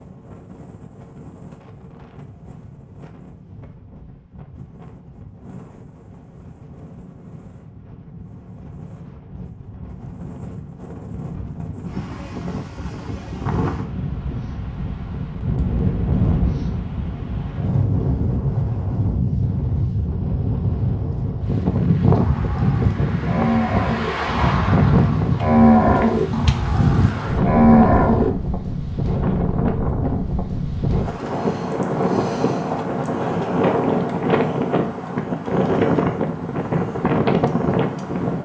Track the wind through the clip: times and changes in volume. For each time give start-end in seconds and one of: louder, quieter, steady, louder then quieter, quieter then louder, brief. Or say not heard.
0.0-38.4 louder.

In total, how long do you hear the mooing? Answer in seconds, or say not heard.
6 s.